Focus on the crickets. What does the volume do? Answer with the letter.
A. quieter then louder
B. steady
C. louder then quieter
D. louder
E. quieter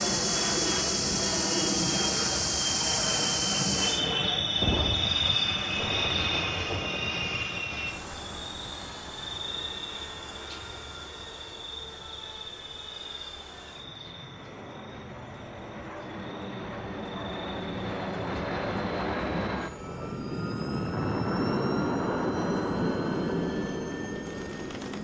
E.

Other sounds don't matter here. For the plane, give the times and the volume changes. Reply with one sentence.
The plane can be heard from 0.0 to 24.9 s, getting quieter then louder.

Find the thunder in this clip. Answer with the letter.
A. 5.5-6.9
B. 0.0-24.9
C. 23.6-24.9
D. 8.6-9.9
A.